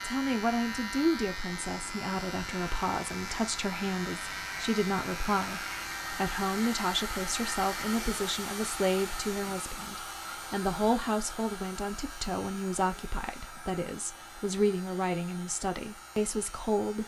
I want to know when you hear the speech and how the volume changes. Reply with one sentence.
The speech can be heard from 0.0 to 17.0 s, at a steady volume.